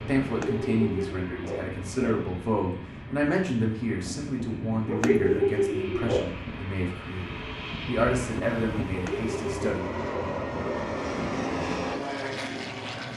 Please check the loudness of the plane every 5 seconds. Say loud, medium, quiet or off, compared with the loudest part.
medium, medium, loud.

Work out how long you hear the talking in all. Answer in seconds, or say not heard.
10 s.